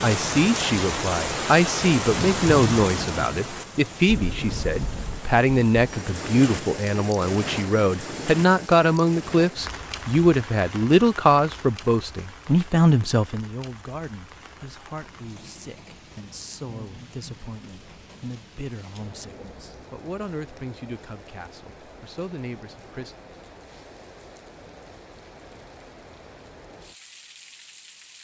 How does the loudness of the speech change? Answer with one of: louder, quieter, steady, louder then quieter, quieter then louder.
quieter.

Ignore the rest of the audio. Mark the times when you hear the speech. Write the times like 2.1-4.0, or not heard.
0.0-23.1.